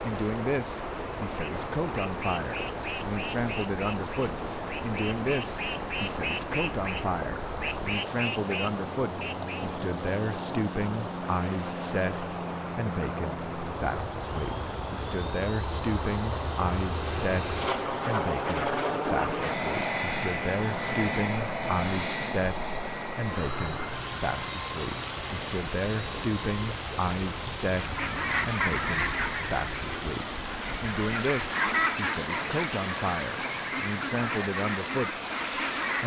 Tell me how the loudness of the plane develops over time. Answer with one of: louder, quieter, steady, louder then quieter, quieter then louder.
louder then quieter.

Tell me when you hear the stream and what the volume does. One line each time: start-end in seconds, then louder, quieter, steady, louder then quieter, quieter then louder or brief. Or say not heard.
0.0-36.0 steady.